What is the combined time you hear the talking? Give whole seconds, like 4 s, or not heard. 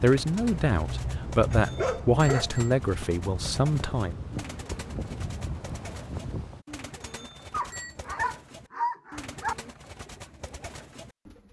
4 s.